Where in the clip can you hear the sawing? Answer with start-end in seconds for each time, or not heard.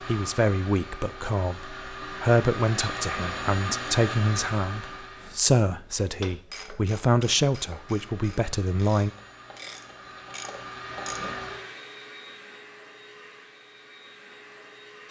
not heard.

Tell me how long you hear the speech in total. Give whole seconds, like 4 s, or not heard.
9 s.